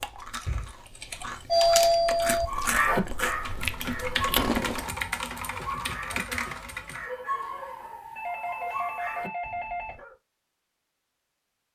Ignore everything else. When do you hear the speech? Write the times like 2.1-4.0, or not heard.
not heard.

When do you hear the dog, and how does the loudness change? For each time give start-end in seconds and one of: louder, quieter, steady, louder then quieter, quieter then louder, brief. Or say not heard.
2.5-10.2 quieter.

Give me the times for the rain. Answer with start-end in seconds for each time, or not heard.
not heard.